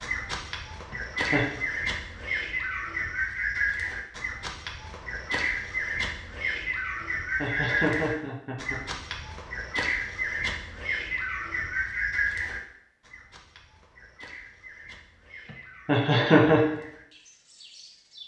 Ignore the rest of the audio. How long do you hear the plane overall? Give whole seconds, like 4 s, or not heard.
not heard.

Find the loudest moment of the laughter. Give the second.
16 s.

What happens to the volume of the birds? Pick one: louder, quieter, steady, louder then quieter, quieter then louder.
quieter.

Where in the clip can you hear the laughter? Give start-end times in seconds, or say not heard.
0.9-1.5, 7.0-9.2, 15.8-16.6.